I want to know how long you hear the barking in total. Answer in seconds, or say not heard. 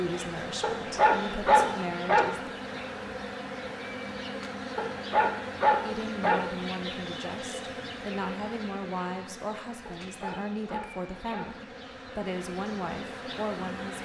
5 s.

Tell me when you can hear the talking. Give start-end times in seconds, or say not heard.
0.0-2.5, 5.8-14.0.